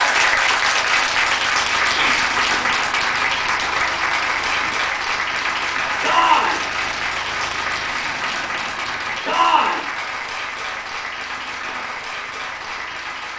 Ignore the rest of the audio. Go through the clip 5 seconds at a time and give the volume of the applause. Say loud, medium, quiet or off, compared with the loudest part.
loud, medium, medium.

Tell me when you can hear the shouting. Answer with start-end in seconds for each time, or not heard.
1.8-2.2, 6.0-6.7, 9.2-9.8.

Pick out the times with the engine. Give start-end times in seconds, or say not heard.
0.0-13.3.